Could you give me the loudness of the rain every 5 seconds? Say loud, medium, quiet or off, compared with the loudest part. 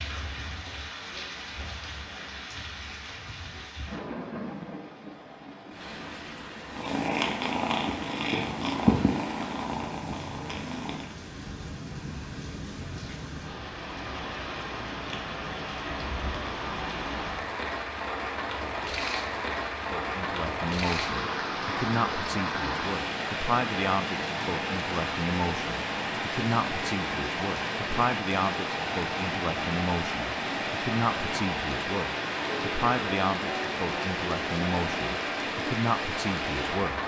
medium, medium, medium, loud, loud, loud, loud, loud.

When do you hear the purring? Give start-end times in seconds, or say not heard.
6.7-11.2.